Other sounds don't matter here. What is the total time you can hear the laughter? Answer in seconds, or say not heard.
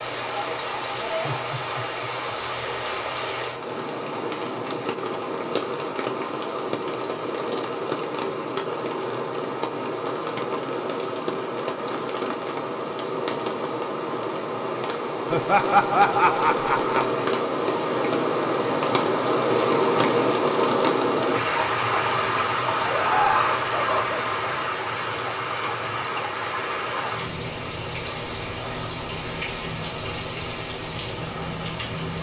4 s.